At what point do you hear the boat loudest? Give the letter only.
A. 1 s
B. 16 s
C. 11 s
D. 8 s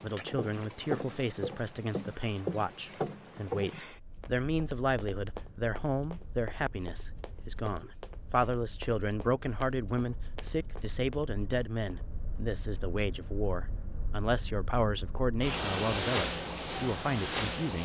B.